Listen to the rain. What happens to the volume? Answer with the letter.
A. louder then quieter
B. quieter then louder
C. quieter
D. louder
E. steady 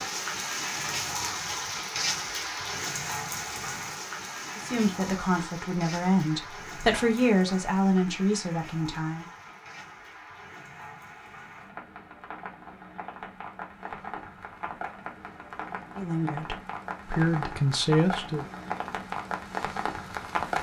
B.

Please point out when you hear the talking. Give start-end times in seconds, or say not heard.
4.5-9.2, 15.9-18.4.